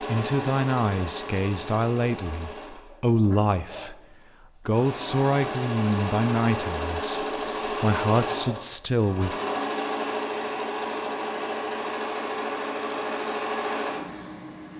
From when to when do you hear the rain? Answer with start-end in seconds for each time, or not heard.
not heard.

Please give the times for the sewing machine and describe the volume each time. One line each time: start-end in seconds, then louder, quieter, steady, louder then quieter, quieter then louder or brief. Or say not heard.
0.0-14.7 louder.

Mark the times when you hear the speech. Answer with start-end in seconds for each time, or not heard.
0.0-4.0, 4.7-9.4.